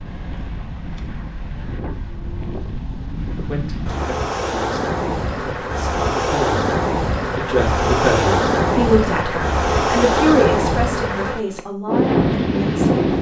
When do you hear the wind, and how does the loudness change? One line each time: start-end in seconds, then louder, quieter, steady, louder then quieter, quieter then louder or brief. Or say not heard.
0.0-13.1 louder.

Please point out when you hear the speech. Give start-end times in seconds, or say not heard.
3.5-6.7, 7.3-13.0.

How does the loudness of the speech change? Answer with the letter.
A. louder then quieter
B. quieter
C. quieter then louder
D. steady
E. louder
A.